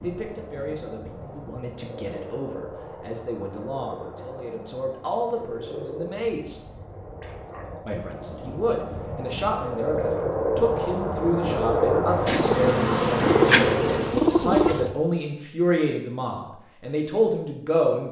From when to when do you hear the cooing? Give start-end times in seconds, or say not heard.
12.2-14.9.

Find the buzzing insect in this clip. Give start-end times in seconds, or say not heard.
12.1-14.2.